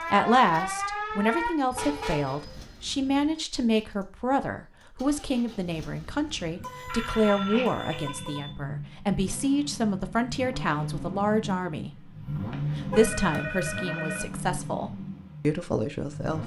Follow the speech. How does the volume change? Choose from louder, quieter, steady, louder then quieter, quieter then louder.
steady.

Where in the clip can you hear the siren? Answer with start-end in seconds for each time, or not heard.
0.0-1.6.